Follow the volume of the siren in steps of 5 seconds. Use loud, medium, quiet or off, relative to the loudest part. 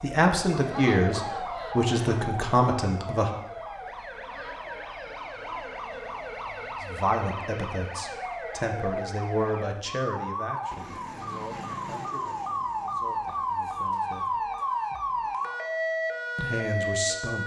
medium, medium, loud, loud.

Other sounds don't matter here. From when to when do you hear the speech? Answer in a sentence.
The speech can be heard from 0.0 to 3.3 s, from 6.8 to 14.3 s and from 16.4 to 17.4 s.